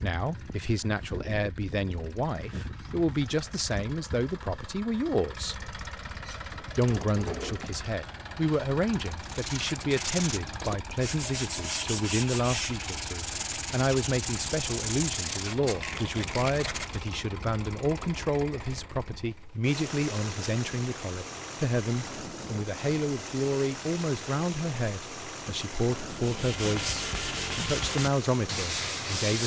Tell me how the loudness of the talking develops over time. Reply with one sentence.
The loudness of the talking stays about the same.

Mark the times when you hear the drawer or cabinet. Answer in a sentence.
You can hear the drawer or cabinet from 6.8 to 7.7 s.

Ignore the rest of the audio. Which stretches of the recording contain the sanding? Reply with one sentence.
The sanding can be heard from 9.2 to 17.1 s and from 26.1 to 29.4 s.